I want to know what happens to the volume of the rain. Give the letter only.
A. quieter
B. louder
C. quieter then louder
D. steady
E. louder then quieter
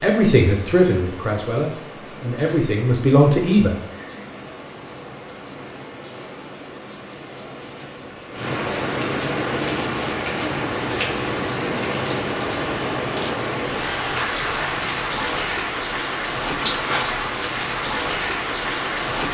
B.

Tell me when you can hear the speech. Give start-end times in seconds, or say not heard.
0.0-3.8.